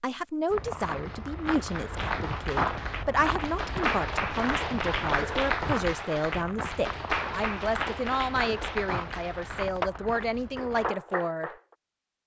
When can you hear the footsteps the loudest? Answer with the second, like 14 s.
3 s.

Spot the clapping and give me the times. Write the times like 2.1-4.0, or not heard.
1.6-11.6.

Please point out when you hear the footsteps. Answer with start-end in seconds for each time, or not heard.
0.5-10.9.